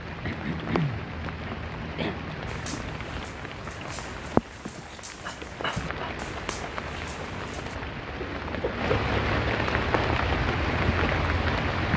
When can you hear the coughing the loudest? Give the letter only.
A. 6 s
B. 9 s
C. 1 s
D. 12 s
C.